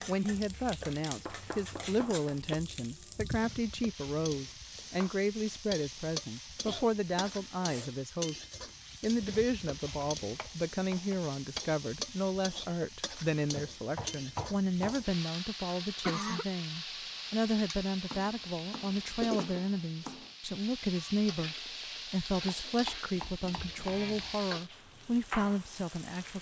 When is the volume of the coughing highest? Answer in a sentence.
The loudest moment of the coughing is at 16 seconds.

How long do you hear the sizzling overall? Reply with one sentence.
You can hear the sizzling for 26 seconds altogether.